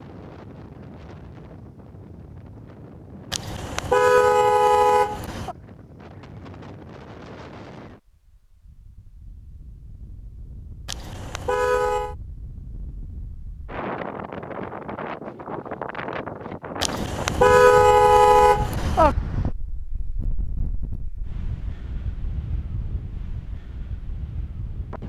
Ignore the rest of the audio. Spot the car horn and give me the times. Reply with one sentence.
You can hear the car horn from 3.3 to 5.5 s, from 10.8 to 12.2 s and from 16.8 to 19.1 s.